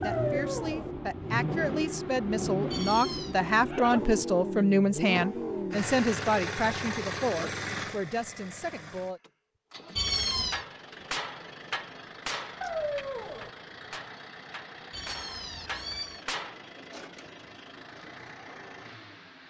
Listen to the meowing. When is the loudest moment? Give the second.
10 s.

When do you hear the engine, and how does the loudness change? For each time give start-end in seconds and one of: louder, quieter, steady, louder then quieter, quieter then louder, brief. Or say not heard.
0.0-19.4 quieter.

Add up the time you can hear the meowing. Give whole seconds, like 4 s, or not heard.
3 s.